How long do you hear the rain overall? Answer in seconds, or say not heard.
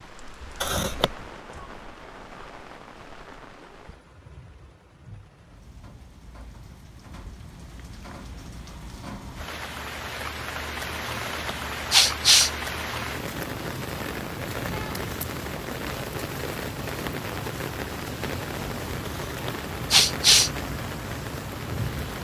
22 s.